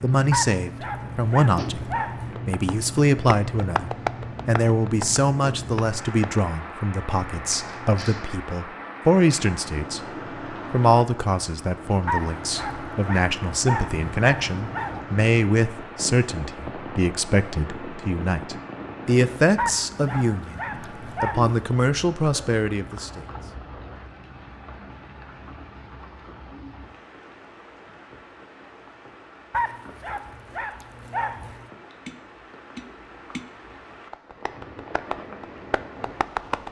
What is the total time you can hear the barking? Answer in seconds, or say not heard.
9 s.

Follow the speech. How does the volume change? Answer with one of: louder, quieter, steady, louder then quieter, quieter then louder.
steady.